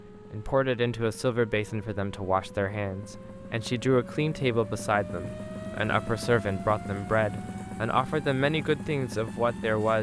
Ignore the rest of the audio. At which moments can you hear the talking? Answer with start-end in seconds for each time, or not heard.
0.3-9.9.